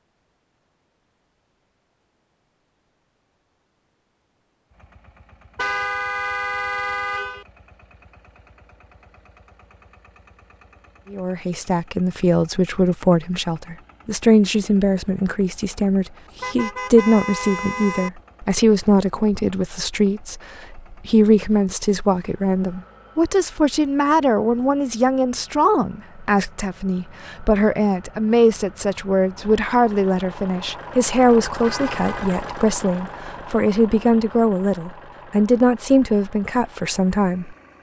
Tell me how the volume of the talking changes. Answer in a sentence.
The volume of the talking stays about the same.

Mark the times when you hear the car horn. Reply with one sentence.
The car horn can be heard from 5.5 to 7.5 s, from 16.4 to 18.1 s and from 31.6 to 32.3 s.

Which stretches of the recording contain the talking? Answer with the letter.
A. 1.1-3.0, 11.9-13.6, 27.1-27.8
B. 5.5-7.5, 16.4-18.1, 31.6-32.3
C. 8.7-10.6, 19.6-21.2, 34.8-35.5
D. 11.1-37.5
D.